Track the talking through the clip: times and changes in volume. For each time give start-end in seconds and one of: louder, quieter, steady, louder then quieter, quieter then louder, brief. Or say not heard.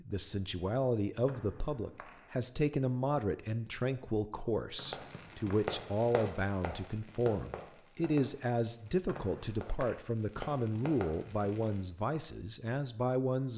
0.0-13.5 steady.